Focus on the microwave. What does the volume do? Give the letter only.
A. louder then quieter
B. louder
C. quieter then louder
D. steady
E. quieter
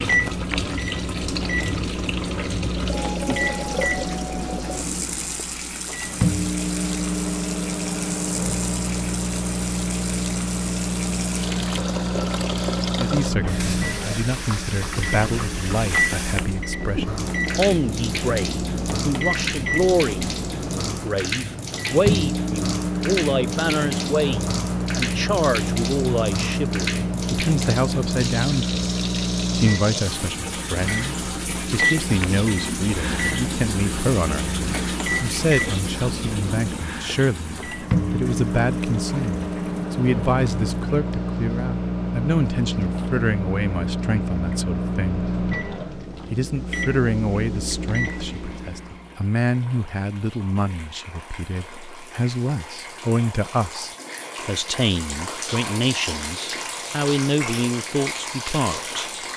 D.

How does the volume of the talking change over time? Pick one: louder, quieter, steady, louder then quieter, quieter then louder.
steady.